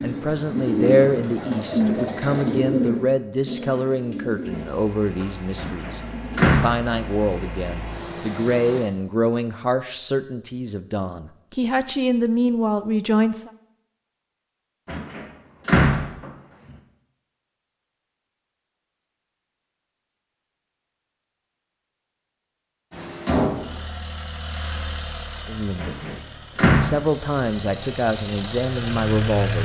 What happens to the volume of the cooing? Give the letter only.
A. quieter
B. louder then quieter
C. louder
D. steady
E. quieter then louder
A.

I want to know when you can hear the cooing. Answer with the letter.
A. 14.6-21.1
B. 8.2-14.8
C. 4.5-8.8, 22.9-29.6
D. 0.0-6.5
D.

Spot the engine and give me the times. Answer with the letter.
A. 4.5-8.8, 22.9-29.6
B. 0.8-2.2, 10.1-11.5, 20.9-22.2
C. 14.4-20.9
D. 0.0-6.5
A.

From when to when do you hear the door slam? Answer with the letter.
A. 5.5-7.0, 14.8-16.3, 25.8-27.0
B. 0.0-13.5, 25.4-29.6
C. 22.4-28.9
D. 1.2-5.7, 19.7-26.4
A.